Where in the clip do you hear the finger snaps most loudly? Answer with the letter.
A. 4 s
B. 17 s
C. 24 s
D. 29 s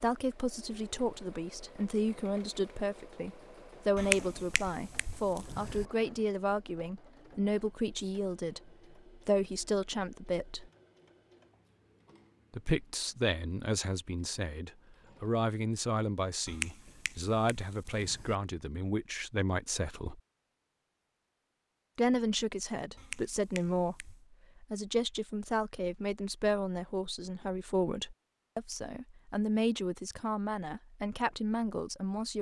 A.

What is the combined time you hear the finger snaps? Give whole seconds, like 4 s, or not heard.
5 s.